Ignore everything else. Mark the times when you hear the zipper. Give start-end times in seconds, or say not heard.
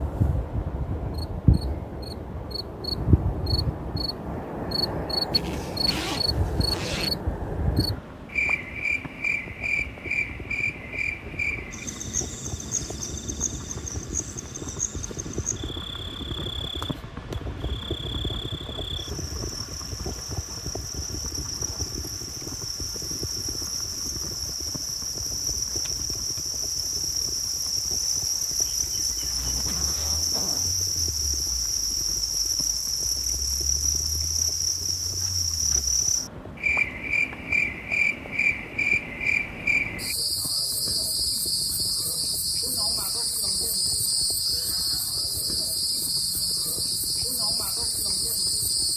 5.3-7.1, 29.2-30.8.